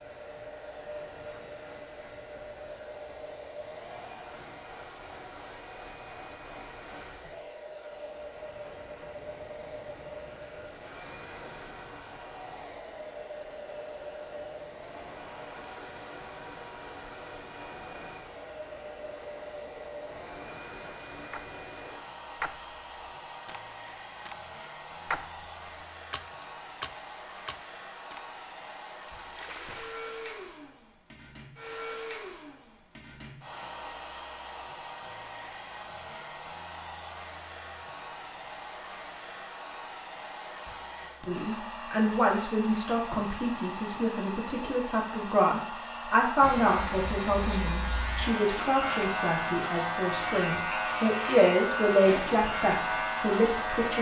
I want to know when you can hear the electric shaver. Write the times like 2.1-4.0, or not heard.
46.4-53.9.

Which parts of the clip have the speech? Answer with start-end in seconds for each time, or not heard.
41.2-53.9.